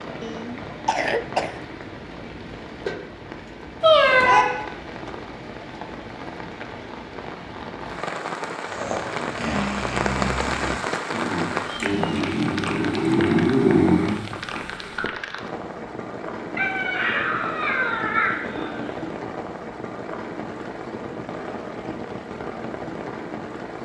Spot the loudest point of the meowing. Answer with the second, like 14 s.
4 s.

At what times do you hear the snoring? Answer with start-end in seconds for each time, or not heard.
8.7-15.1.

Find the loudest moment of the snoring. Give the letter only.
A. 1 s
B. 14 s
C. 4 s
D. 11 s
B.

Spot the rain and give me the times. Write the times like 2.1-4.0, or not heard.
0.0-23.8.